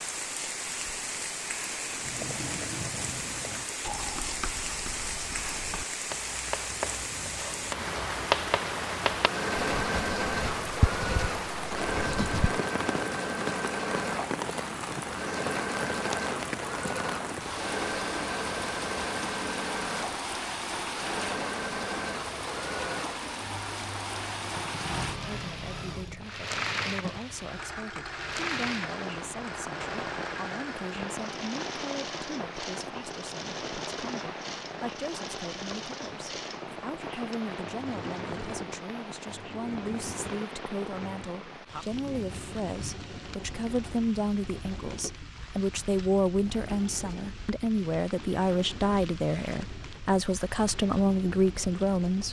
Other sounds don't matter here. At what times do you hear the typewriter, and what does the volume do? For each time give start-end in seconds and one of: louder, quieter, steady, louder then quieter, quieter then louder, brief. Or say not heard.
not heard.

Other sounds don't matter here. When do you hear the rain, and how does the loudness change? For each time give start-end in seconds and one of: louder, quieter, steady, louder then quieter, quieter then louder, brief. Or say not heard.
0.0-52.2 quieter.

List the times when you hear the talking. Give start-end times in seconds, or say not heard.
25.2-52.2.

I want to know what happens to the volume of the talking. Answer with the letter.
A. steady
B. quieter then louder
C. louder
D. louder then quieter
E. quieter
C.